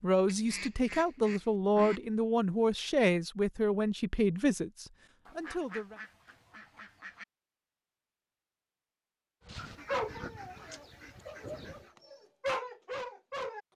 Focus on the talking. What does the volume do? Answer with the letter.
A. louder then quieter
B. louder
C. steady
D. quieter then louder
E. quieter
E.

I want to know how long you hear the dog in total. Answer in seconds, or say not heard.
4 s.